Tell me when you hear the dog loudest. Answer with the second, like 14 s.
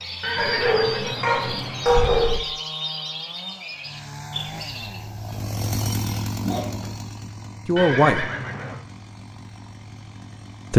2 s.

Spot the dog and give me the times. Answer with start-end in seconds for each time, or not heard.
0.3-2.4, 6.4-7.0.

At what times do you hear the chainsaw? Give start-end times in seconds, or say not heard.
0.0-10.7.